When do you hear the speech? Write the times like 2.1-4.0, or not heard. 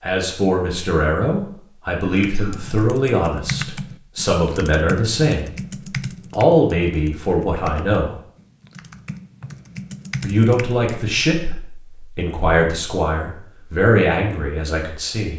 0.0-5.5, 6.3-8.2, 10.2-15.3.